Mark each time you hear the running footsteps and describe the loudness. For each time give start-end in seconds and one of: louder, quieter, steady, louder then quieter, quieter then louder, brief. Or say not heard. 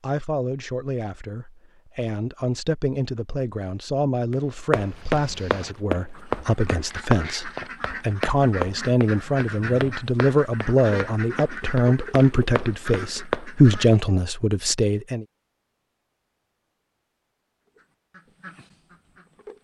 4.3-13.8 quieter then louder.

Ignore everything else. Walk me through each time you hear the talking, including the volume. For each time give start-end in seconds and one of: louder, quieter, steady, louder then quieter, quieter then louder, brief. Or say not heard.
0.0-15.2 louder.